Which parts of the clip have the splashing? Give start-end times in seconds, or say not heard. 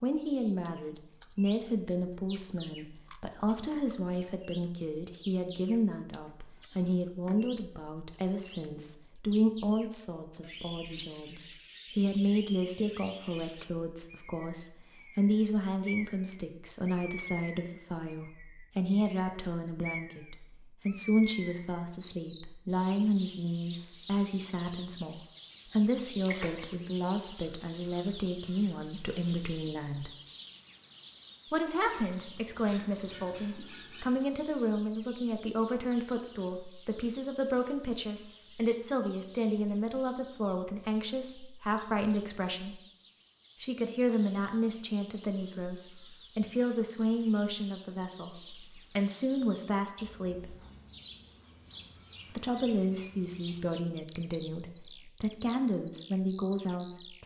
26.2-26.8.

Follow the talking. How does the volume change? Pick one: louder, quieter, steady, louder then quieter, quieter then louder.
steady.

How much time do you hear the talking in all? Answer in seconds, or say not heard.
53 s.